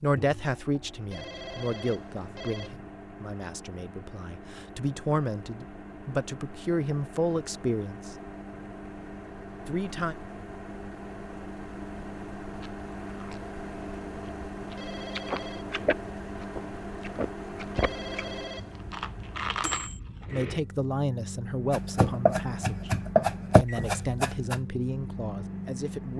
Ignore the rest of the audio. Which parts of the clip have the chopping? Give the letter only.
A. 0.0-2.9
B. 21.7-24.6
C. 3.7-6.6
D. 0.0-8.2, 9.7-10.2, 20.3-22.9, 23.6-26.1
B.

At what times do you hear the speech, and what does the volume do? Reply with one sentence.
The speech can be heard from 0.0 to 8.2 s, getting quieter then louder; briefly from 9.7 to 10.2 s; briefly from 20.3 to 22.9 s; and briefly from 23.6 to 26.1 s.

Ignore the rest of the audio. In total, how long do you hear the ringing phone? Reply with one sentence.
The ringing phone can be heard for 4 seconds in total.